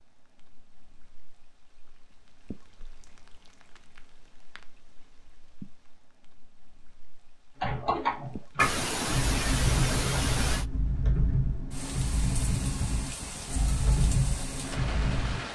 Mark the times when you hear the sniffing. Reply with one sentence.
You can hear the sniffing from 8.6 to 10.7 s.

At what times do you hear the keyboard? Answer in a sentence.
You can hear the keyboard from 7.6 to 15.4 s.